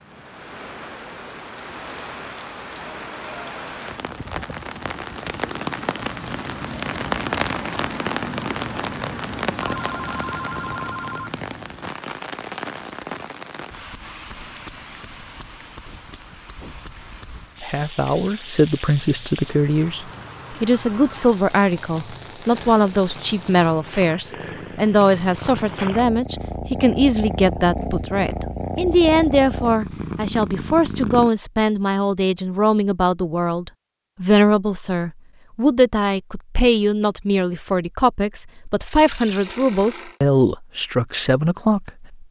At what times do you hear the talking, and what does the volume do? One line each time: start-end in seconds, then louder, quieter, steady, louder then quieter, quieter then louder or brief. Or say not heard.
17.6-42.2 steady.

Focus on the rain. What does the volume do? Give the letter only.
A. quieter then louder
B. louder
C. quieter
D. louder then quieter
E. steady
D.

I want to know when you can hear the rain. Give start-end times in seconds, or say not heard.
0.0-23.8.